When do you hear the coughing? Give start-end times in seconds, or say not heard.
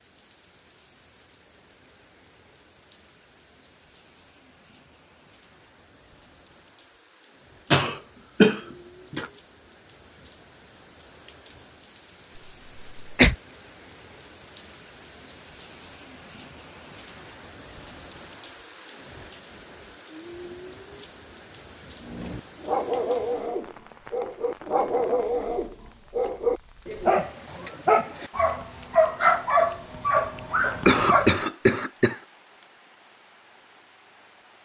7.7-9.2, 12.9-13.3, 30.9-32.2.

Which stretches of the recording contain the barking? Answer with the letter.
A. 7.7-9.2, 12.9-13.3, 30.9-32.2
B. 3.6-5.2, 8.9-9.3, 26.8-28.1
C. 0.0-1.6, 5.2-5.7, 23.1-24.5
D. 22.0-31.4
D.